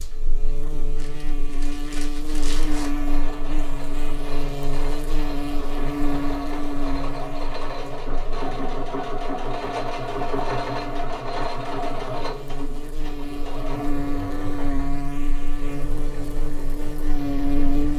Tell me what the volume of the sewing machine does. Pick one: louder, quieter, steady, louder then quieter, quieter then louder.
louder then quieter.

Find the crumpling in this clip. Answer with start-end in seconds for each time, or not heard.
0.9-3.0.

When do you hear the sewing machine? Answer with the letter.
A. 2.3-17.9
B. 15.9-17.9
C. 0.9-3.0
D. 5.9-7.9
A.